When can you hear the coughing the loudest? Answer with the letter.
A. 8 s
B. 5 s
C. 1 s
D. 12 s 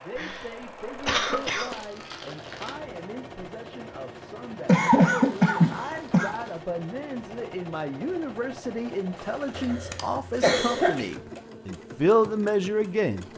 B.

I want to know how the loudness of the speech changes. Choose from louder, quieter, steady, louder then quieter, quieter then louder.
louder.